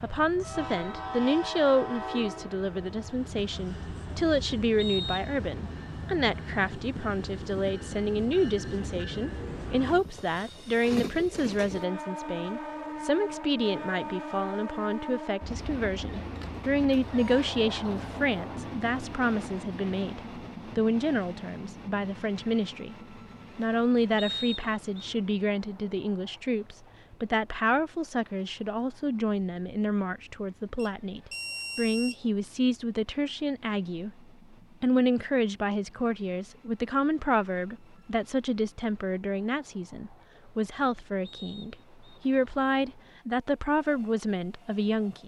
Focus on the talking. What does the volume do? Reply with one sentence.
The volume of the talking stays about the same.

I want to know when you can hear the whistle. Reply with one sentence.
You can hear the whistle from 4.8 to 5.3 s, from 24.1 to 25.1 s and from 41.2 to 42.2 s.